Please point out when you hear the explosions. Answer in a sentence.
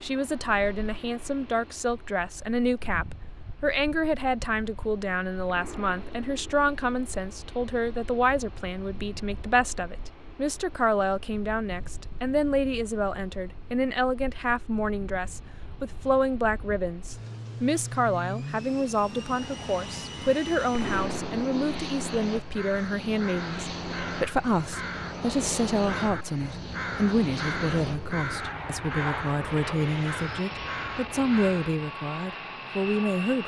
The explosions can be heard from 5.5 to 6.7 s and from 20.7 to 21.9 s.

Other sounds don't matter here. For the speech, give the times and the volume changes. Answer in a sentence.
The speech can be heard from 0.0 to 33.4 s, at a steady volume.